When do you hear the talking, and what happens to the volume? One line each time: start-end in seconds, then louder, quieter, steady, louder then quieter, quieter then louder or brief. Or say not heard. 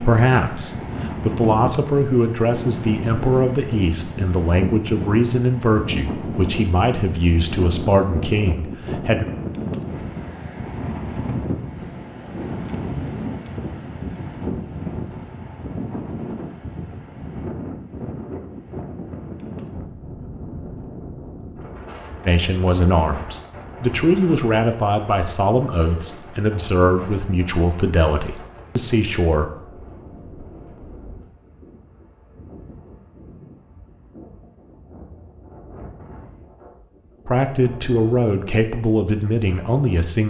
0.0-9.2 steady
22.2-29.5 steady
37.2-40.2 brief.